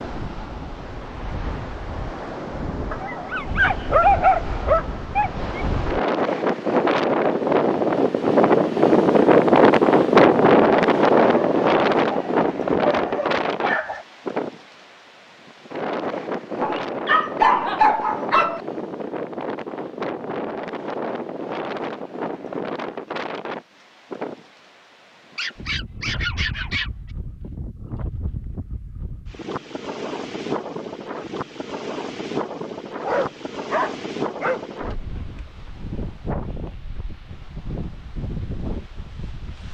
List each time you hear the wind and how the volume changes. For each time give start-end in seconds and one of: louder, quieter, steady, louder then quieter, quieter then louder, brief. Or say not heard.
0.0-39.6 louder then quieter.